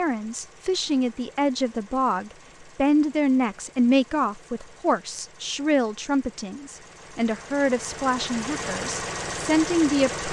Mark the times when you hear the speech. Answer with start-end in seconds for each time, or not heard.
0.0-10.2.